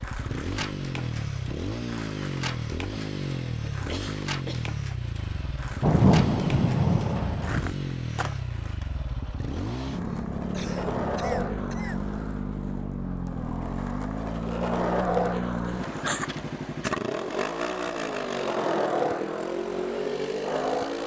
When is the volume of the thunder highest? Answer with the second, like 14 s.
6 s.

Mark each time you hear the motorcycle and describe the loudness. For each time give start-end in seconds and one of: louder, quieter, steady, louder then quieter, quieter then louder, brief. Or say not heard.
0.0-21.0 steady.